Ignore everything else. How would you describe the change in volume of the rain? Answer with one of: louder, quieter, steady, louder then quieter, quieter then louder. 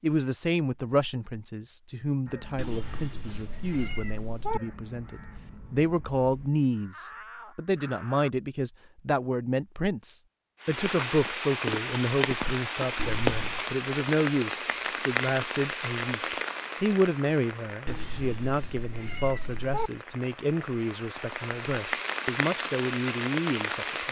quieter then louder.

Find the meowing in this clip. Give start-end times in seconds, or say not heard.
2.5-4.6, 12.9-13.7, 17.9-19.9.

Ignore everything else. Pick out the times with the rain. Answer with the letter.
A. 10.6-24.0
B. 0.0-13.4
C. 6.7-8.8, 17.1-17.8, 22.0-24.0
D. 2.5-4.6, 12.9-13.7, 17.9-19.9
A.